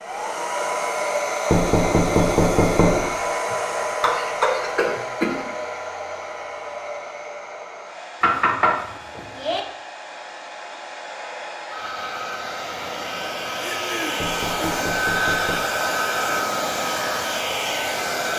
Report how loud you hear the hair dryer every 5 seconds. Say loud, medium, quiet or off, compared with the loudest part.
loud, medium, medium, loud.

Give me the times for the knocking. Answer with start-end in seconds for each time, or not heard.
1.5-3.1, 8.2-9.6, 14.2-15.7.